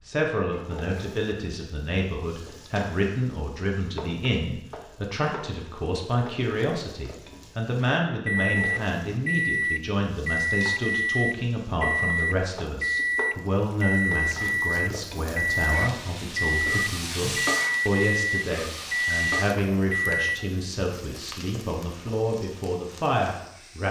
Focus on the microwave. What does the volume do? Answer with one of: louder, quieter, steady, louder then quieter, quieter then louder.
steady.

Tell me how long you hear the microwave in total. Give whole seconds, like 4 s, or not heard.
12 s.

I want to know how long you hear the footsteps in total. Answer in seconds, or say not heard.
not heard.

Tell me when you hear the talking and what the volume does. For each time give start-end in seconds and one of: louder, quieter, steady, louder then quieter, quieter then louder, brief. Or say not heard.
0.1-23.8 steady.